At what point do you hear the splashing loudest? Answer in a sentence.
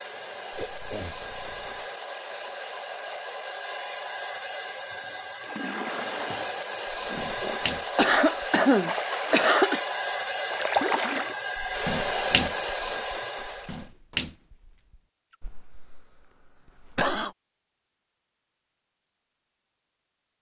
The volume of the splashing peaks at 11 seconds.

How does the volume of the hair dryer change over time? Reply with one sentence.
The volume of the hair dryer goes up.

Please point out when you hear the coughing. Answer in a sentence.
You can hear the coughing from 0.5 to 1.9 s, from 7.1 to 9.8 s and from 15.4 to 17.4 s.